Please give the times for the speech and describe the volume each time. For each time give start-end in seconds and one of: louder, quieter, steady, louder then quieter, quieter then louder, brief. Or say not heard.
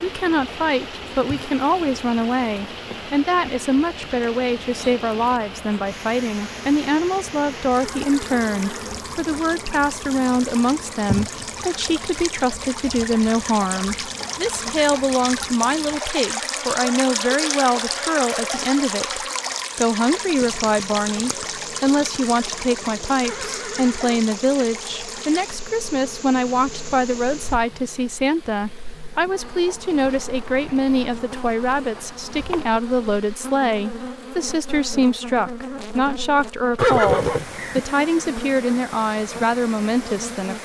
0.0-40.6 steady.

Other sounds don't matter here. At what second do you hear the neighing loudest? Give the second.
37 s.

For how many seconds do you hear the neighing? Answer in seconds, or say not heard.
3 s.